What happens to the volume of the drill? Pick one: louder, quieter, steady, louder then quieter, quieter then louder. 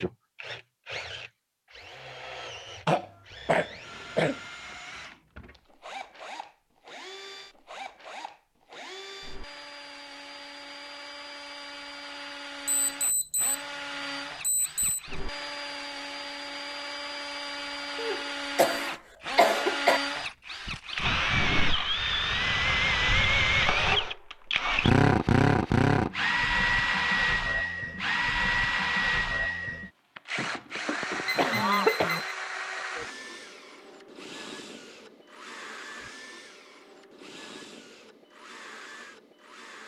louder then quieter.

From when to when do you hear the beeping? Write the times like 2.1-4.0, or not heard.
12.7-13.7, 14.4-15.0, 31.2-32.4.